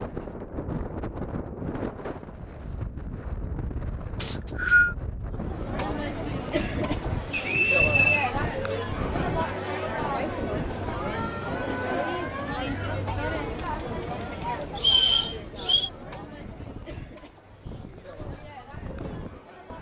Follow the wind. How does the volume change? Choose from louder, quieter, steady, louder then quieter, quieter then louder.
quieter.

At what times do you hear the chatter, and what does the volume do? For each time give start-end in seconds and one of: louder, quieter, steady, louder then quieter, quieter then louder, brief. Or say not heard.
5.3-19.7 quieter.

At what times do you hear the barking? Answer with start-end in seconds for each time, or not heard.
not heard.